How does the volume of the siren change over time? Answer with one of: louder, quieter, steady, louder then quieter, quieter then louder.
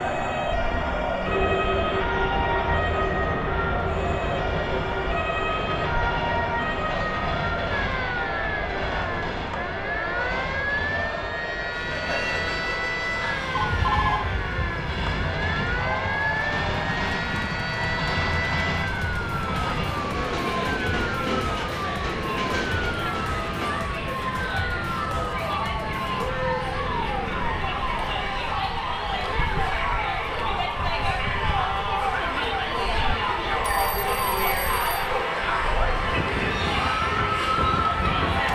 steady.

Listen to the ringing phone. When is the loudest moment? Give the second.
14 s.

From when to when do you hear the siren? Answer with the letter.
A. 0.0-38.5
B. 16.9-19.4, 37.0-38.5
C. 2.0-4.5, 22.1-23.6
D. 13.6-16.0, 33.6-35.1
A.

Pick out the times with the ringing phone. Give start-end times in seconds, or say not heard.
13.6-16.0, 33.6-35.1.